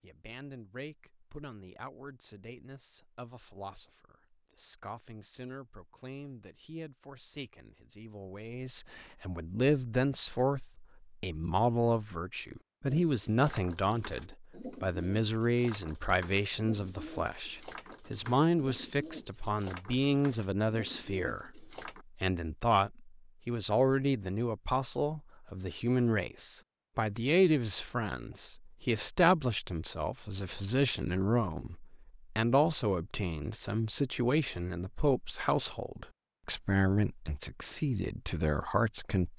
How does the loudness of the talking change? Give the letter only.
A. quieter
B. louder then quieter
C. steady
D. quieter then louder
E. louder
E.